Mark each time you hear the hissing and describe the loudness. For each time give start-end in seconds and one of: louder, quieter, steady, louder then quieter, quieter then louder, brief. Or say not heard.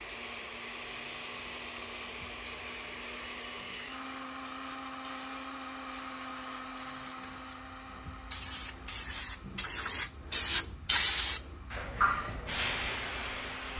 0.0-13.7 louder.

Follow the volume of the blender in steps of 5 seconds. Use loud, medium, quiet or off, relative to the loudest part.
loud, loud, medium.